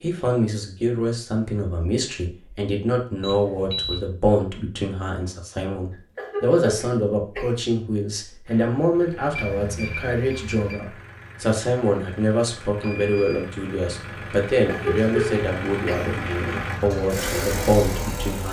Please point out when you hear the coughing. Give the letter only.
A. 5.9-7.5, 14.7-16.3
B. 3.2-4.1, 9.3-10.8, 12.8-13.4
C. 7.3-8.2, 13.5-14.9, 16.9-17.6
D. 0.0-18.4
A.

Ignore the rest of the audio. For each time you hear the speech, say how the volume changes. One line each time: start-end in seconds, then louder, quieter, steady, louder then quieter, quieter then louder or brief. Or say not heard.
0.0-18.4 steady.